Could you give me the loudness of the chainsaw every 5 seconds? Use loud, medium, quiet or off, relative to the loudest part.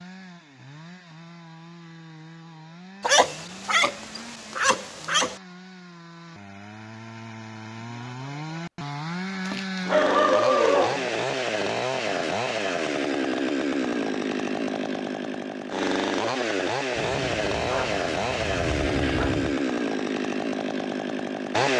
quiet, medium, loud, loud, loud.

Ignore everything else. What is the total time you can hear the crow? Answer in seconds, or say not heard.
not heard.